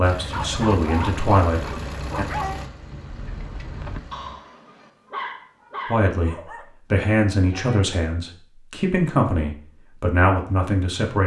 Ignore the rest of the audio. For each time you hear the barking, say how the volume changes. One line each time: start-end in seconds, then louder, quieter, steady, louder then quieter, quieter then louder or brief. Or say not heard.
0.2-6.7 quieter then louder.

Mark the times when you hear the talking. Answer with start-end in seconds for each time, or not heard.
0.0-2.2, 5.8-11.2.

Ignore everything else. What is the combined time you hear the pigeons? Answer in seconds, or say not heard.
not heard.